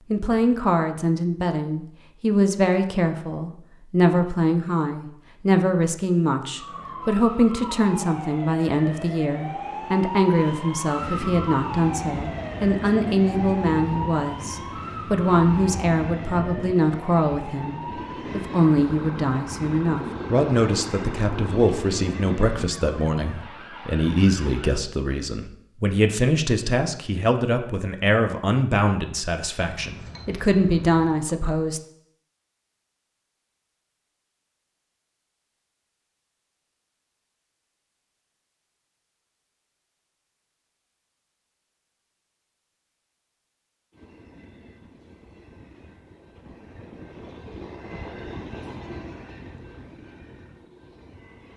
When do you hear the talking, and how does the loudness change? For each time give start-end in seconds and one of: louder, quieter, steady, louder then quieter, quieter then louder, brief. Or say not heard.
0.1-31.8 steady.